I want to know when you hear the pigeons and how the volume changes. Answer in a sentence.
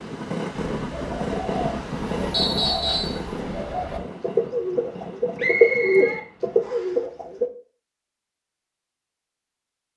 You can hear the pigeons from 0.8 to 7.5 s, getting louder.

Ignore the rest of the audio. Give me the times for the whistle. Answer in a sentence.
You can hear the whistle from 2.3 to 3.2 s and from 5.3 to 6.9 s.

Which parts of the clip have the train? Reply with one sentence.
You can hear the train from 0.0 to 7.0 s.